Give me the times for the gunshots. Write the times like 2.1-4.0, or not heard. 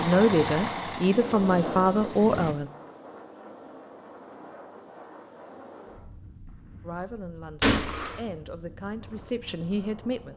7.6-8.2.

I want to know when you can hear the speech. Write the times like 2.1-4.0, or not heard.
0.0-2.7, 6.8-10.3.